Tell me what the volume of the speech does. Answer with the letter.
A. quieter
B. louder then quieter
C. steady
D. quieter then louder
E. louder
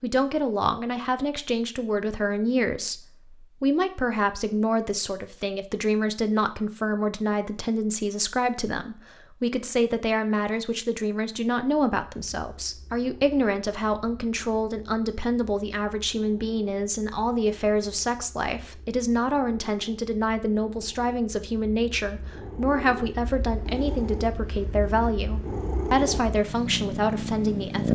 C.